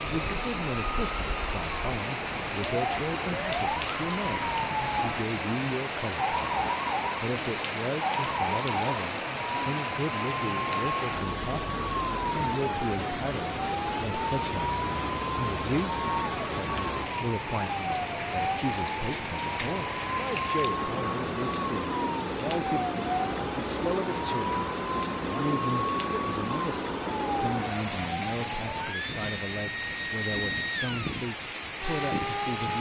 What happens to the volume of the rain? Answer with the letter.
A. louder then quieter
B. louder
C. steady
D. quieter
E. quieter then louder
C.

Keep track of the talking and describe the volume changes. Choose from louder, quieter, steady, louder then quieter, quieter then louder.
steady.